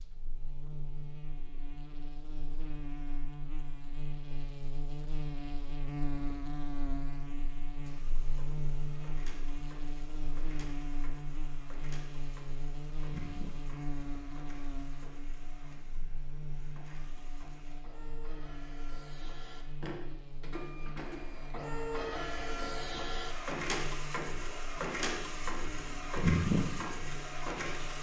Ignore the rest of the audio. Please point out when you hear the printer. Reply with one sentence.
You can hear the printer from 7.8 to 27.9 s.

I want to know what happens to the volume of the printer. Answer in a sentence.
The loudness of the printer goes up.